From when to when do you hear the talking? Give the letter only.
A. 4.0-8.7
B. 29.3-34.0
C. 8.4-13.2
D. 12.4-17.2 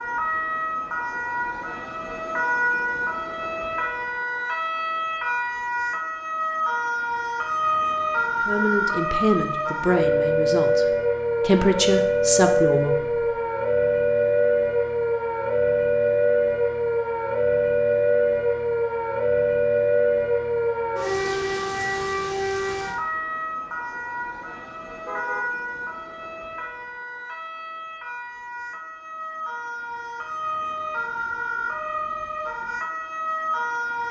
C.